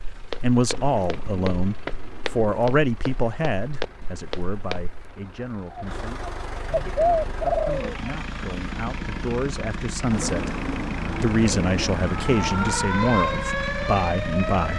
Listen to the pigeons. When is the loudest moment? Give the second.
7 s.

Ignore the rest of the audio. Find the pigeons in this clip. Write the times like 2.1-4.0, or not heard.
0.8-2.5, 5.7-8.1, 10.1-12.8.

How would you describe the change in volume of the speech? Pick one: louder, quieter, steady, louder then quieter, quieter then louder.
quieter then louder.